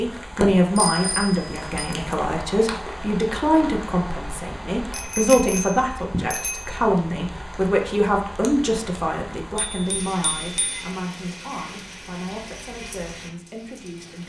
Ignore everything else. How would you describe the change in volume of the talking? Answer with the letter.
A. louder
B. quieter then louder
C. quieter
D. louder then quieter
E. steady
C.